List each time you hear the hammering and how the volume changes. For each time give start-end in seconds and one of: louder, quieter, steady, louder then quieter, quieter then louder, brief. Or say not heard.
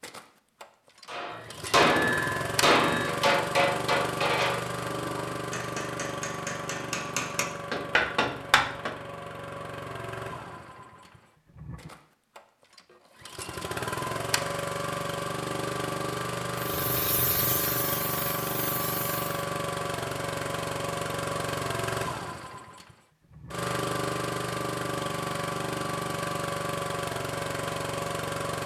1.1-8.9 quieter then louder.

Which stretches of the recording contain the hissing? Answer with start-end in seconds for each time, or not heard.
16.6-19.3.